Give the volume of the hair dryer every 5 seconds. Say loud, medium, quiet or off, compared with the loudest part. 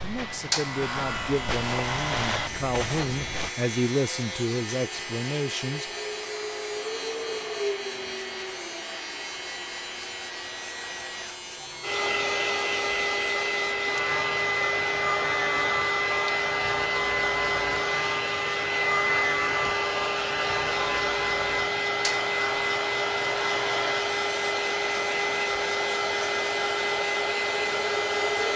quiet, quiet, loud, loud, loud, loud.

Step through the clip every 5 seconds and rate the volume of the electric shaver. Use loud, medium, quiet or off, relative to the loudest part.
loud, loud, medium, loud, loud, medium.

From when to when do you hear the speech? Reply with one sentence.
You can hear the speech from 0.0 to 5.9 s.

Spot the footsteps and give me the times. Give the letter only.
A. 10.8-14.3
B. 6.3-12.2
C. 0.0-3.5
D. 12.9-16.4
C.